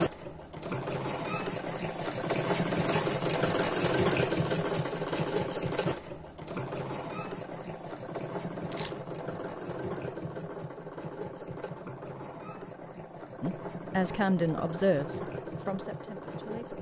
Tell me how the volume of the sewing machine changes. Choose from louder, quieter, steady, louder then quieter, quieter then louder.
quieter.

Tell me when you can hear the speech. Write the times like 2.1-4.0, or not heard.
13.4-16.7.